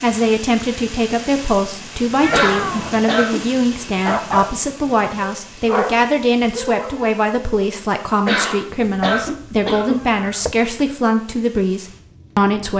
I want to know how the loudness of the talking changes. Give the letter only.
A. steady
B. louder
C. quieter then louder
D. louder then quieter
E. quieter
A.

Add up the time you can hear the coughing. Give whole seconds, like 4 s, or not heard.
3 s.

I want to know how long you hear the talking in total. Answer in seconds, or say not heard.
13 s.